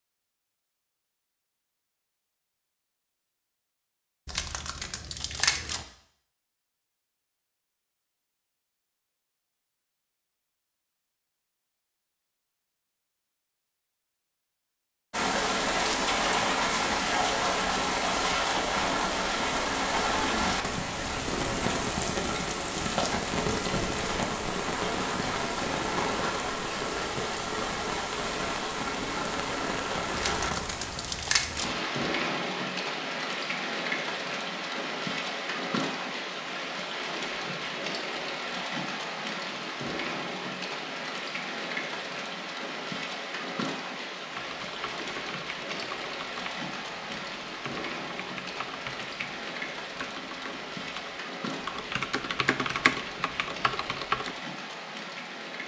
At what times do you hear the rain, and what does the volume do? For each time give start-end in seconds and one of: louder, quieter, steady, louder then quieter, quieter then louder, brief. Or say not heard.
15.1-55.6 quieter.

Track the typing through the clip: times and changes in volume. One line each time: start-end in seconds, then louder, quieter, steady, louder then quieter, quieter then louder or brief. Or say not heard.
44.4-54.5 louder.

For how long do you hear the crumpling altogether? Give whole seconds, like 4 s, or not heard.
3 s.